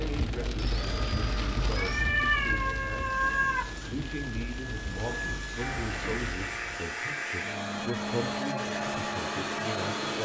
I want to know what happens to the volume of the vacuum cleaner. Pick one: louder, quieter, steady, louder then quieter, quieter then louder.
louder.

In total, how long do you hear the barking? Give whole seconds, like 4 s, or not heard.
not heard.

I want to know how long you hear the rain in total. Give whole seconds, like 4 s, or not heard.
7 s.